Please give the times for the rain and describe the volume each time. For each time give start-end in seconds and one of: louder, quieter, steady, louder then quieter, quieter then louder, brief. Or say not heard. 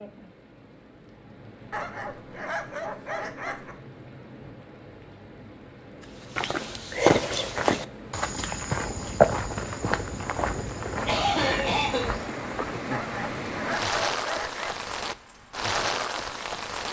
0.0-16.8 louder.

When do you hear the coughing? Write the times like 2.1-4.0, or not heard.
11.1-12.1.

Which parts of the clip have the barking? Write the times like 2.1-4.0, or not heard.
1.7-3.8, 12.9-14.8.